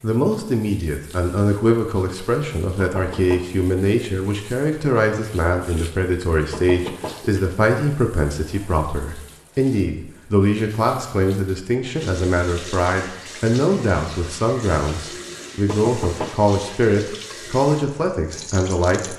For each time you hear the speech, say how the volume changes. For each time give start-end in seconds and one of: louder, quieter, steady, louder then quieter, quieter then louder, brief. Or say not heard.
0.0-19.1 steady.